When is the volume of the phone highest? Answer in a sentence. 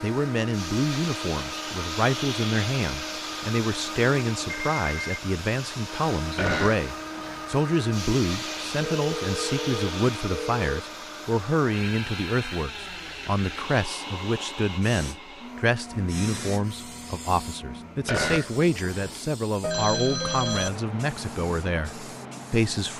The volume of the phone peaks at 20 seconds.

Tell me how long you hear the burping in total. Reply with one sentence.
The burping can be heard for 2 seconds in total.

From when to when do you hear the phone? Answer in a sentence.
You can hear the phone from 4.5 to 5.2 s, from 8.8 to 10.8 s and from 19.6 to 20.7 s.